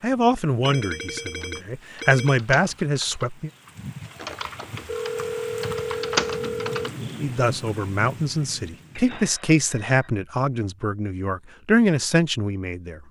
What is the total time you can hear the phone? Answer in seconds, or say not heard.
5 s.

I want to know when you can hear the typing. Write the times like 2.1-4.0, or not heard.
1.4-6.9.